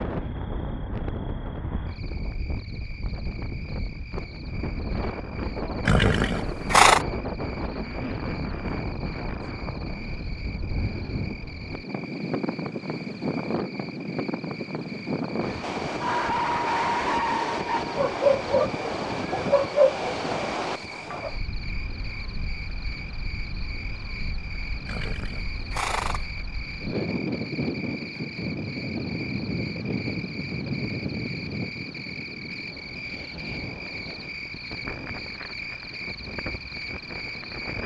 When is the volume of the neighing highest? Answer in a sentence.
The volume of the neighing peaks at 7 seconds.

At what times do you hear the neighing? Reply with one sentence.
The neighing can be heard from 5.8 to 7.0 s and from 24.9 to 26.3 s.